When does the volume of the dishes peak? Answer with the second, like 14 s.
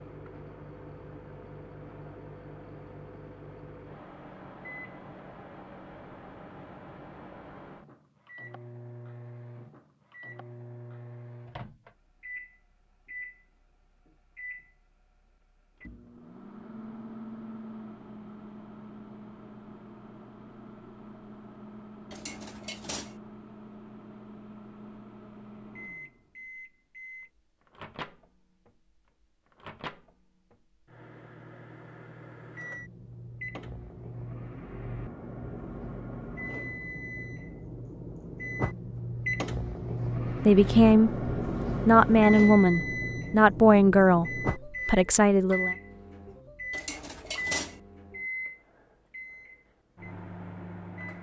47 s.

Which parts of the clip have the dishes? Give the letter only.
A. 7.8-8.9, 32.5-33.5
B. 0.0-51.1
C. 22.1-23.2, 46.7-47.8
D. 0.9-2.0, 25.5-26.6
C.